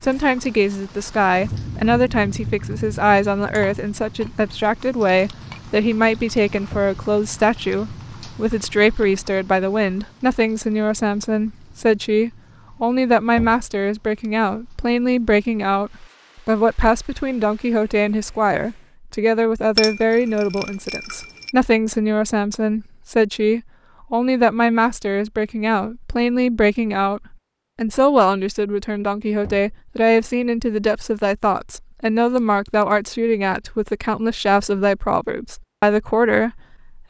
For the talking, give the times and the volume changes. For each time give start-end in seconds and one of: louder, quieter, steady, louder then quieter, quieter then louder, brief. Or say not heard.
0.0-37.0 steady.